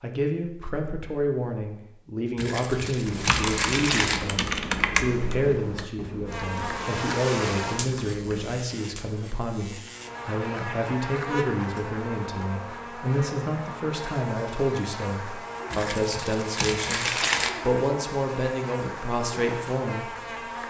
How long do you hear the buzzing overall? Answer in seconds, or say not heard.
14 s.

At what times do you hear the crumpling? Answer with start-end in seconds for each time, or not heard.
2.4-4.2, 15.7-17.5.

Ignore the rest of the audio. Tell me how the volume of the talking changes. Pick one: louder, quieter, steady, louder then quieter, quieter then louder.
steady.